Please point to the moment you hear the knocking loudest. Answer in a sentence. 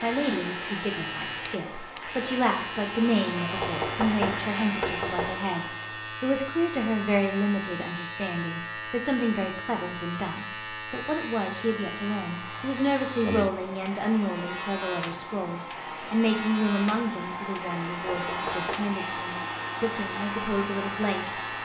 The volume of the knocking peaks at 4 seconds.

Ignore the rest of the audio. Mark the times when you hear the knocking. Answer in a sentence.
The knocking can be heard from 3.5 to 5.4 s and from 18.1 to 18.9 s.